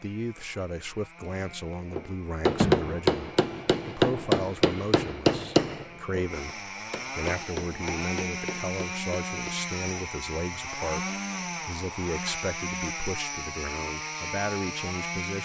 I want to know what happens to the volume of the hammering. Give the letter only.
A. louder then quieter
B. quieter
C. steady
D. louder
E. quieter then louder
B.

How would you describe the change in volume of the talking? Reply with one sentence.
The loudness of the talking stays about the same.